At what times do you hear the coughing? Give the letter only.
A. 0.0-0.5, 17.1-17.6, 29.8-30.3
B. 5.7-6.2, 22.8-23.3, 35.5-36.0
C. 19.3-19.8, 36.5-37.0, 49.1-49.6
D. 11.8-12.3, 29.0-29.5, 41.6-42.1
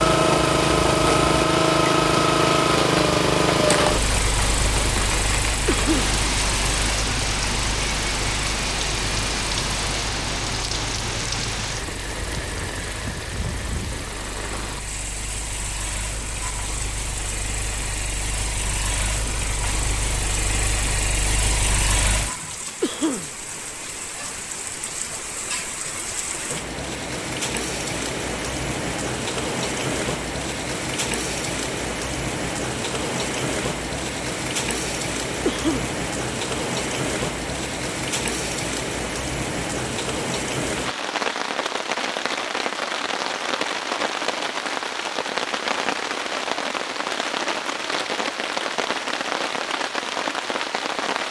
B.